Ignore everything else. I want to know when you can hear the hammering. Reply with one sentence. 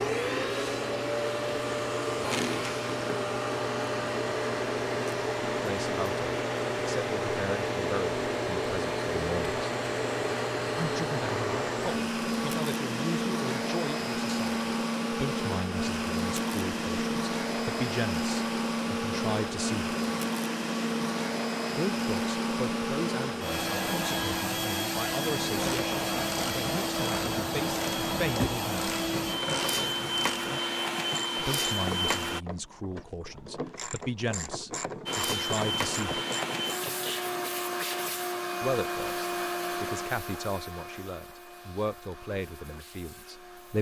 The hammering can't be heard in this clip.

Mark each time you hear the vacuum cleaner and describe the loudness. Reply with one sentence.
You can hear the vacuum cleaner from 0.0 to 32.4 s, at a steady volume; and from 35.0 to 43.7 s, getting quieter.